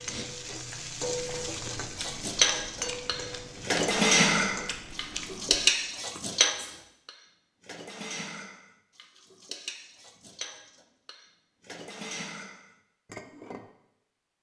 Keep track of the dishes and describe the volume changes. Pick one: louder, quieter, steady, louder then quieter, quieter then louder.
quieter.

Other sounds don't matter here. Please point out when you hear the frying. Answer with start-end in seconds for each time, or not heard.
0.0-4.8.